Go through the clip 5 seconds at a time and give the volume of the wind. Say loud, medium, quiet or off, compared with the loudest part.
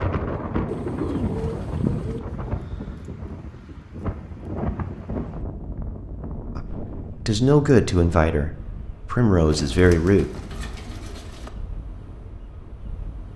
loud, medium, quiet.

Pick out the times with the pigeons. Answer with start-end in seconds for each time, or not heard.
0.7-2.2, 9.5-11.5.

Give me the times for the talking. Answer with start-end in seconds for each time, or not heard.
6.5-10.3.